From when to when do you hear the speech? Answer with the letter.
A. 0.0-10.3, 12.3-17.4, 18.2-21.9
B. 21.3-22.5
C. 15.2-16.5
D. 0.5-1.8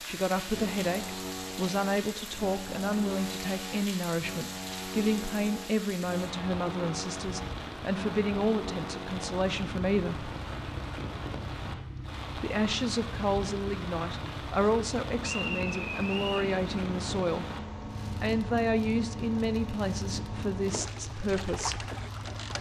A.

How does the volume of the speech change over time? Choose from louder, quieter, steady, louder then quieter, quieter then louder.
steady.